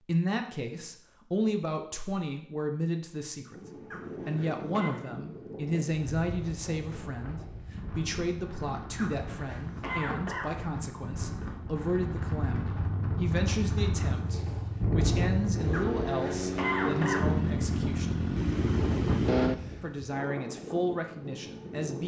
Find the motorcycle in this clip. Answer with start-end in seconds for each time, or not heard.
12.1-19.9.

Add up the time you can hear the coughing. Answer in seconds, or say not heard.
4 s.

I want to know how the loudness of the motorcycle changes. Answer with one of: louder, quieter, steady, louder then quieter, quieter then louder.
louder.